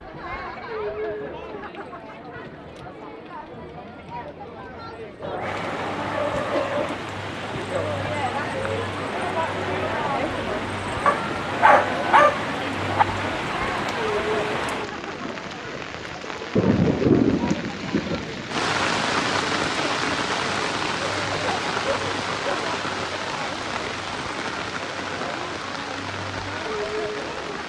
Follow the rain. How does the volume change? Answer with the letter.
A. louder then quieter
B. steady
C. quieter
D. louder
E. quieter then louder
A.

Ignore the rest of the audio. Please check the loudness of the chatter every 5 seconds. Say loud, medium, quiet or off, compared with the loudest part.
medium, loud, loud, medium, medium, loud.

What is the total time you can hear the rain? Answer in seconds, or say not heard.
22 s.